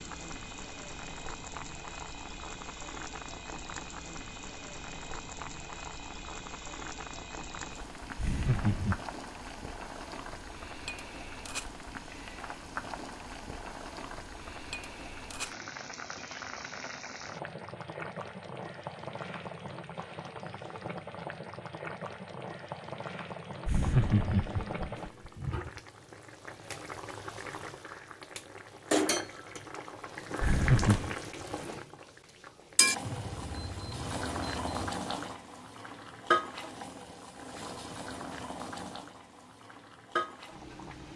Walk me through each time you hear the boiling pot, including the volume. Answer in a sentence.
The boiling pot can be heard from 0.0 to 41.1 s, getting louder.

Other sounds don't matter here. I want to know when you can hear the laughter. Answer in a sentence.
You can hear the laughter from 8.2 to 9.0 s, from 23.6 to 25.3 s and from 30.4 to 31.1 s.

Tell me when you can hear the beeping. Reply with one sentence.
You can hear the beeping from 33.0 to 35.0 s.